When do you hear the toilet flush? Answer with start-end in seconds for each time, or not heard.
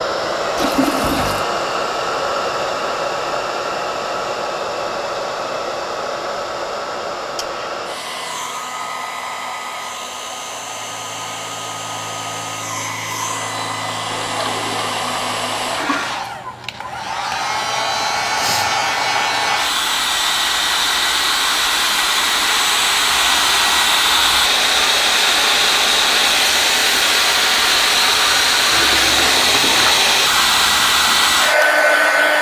0.6-1.4, 14.1-16.1, 28.7-30.1.